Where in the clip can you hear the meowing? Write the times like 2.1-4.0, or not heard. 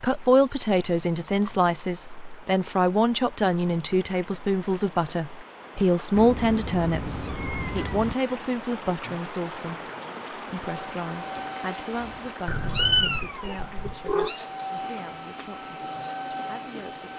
0.1-1.9, 6.2-8.2, 12.4-14.4.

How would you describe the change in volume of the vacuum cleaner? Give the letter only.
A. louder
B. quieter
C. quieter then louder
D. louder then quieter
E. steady
C.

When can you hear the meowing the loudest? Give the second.
13 s.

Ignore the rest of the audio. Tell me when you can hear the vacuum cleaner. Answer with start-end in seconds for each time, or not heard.
10.7-17.1.